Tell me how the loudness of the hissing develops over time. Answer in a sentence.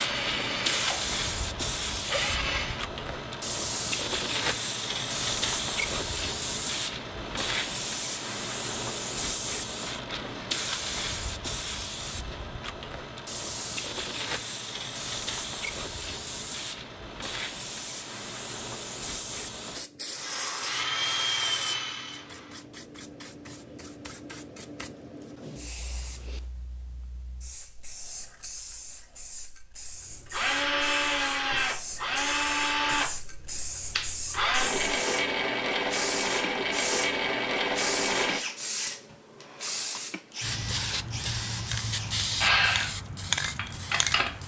The loudness of the hissing goes down, then up.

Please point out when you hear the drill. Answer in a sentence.
You can hear the drill from 0.0 to 2.9 s, from 20.1 to 22.6 s and from 30.2 to 44.4 s.